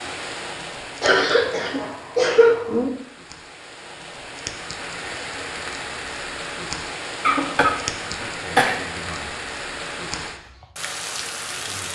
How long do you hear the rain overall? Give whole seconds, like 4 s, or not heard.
12 s.